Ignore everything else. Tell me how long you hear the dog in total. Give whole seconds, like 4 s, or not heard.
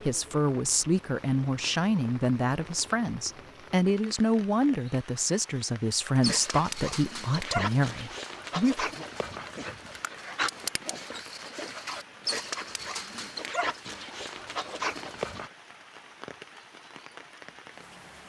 9 s.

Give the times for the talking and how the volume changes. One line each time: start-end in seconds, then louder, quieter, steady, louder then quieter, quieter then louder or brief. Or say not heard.
0.0-9.1 steady.